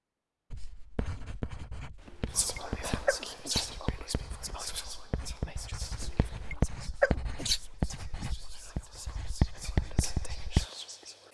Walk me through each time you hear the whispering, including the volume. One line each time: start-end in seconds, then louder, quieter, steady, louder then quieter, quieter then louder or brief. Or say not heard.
2.3-11.2 quieter then louder.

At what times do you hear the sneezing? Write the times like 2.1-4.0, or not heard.
2.0-3.6, 6.0-7.6.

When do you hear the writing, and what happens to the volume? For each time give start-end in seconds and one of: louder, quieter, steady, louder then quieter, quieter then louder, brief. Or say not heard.
0.5-10.7 louder.